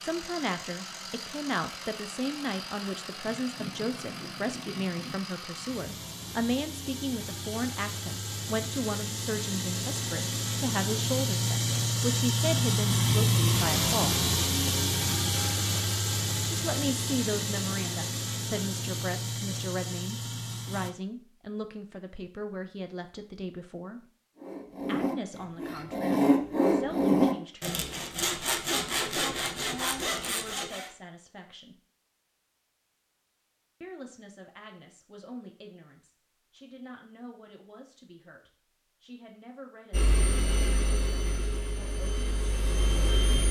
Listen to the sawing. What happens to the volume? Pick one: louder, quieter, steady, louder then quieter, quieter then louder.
louder then quieter.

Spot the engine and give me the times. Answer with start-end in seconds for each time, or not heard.
0.0-20.9, 39.9-43.4.